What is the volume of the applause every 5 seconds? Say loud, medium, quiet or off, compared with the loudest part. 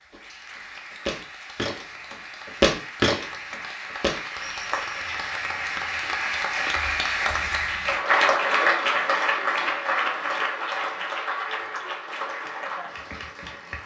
quiet, loud, medium.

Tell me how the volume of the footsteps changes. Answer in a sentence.
The loudness of the footsteps goes up, then down.